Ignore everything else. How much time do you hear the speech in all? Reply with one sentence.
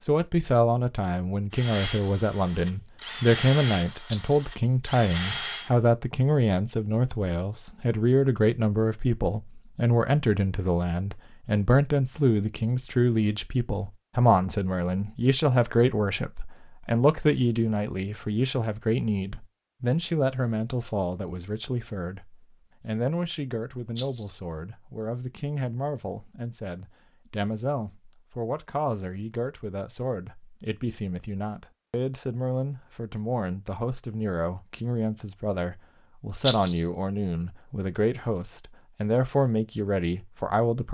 The speech can be heard for 41 seconds in total.